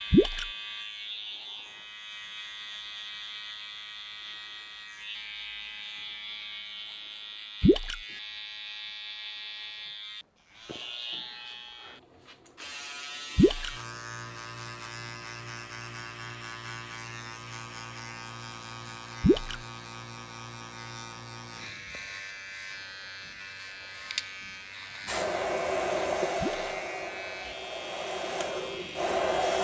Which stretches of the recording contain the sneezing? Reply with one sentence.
You can't hear the sneezing here.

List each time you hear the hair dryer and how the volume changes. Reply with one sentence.
You can hear the hair dryer from 25.1 to 29.6 s, getting quieter then louder.